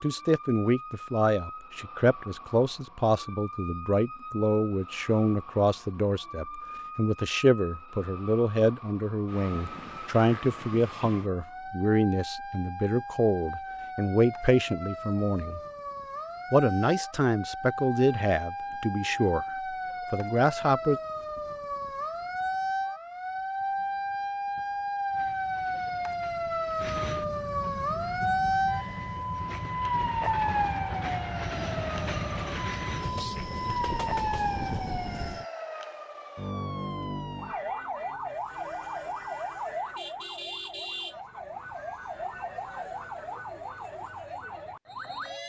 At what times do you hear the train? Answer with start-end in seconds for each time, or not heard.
25.1-35.5.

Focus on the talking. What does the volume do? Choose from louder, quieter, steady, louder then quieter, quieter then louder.
steady.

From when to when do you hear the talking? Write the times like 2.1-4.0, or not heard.
0.0-15.6, 16.5-21.0.